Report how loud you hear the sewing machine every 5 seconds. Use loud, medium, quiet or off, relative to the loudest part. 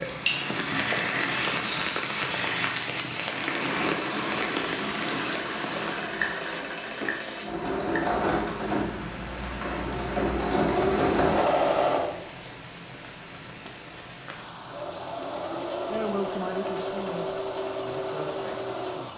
medium, loud, loud, medium.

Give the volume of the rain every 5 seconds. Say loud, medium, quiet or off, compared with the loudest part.
loud, medium, quiet, quiet.